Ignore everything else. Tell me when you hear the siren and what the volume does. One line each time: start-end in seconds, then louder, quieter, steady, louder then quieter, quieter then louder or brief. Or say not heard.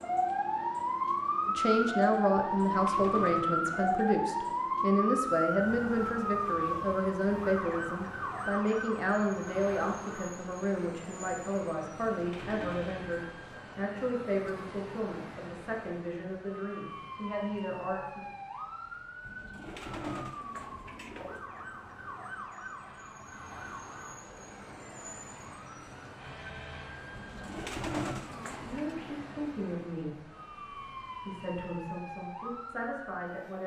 0.0-33.6 quieter.